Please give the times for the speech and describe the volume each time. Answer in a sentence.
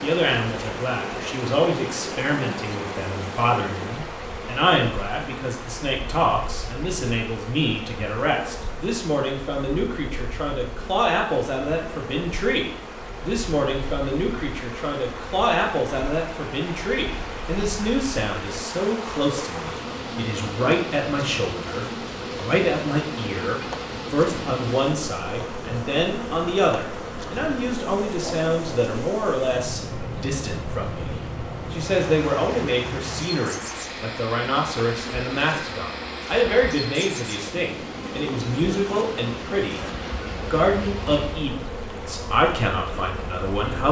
You can hear the speech from 0.0 to 43.8 s, at a steady volume.